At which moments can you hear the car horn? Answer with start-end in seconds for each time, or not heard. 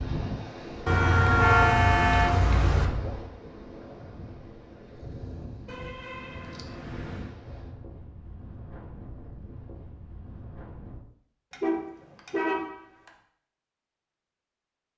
0.8-2.9, 5.7-7.3, 11.5-13.1.